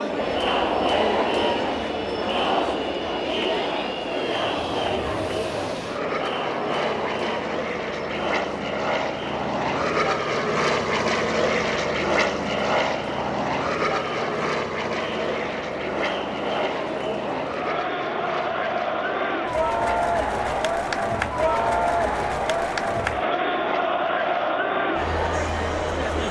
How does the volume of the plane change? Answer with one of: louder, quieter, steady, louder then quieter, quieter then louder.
louder then quieter.